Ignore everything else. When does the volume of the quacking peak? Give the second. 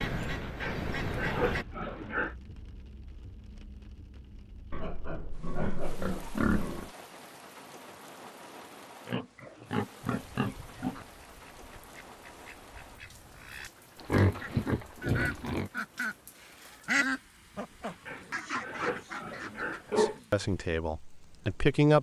17 s.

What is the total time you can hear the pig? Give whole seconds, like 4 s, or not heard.
10 s.